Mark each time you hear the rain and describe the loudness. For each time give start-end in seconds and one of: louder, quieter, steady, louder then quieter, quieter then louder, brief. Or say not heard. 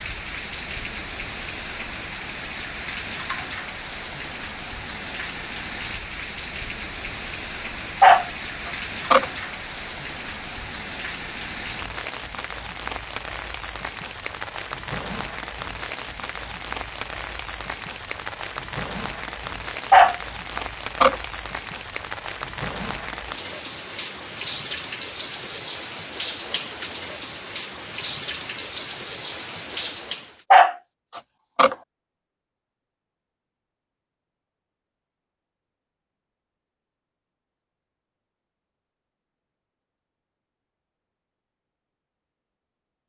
0.0-30.4 steady.